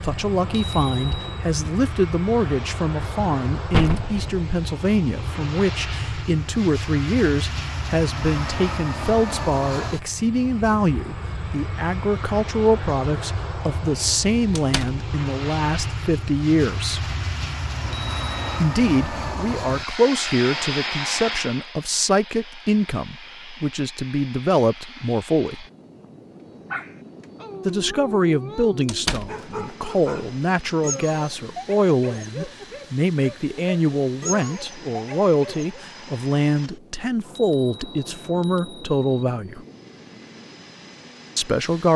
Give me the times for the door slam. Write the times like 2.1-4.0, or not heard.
3.7-4.4, 14.6-15.0, 28.9-29.3.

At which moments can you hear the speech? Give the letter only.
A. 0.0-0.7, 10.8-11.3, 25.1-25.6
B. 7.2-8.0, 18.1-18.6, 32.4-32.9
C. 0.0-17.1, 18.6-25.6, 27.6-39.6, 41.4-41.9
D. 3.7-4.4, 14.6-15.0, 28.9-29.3
C.